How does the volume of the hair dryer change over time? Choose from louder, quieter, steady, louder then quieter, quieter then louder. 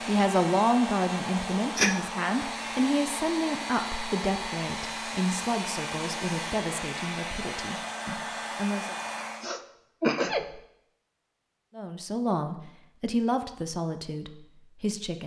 steady.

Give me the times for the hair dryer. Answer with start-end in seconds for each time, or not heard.
0.0-9.5.